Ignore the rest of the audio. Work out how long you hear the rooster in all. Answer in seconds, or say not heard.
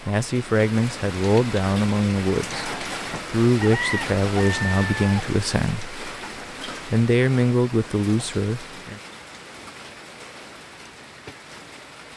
2 s.